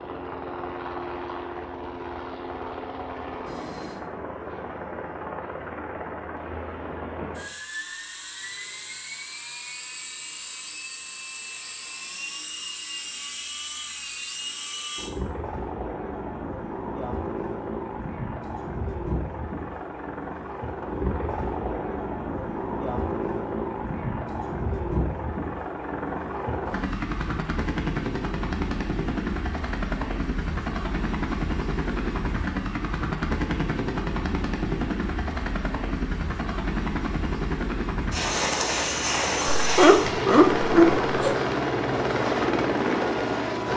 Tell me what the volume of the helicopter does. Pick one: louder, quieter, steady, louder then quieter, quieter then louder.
louder.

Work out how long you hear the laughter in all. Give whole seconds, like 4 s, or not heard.
2 s.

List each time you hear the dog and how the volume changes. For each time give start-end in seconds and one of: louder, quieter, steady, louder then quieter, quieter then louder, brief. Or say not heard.
not heard.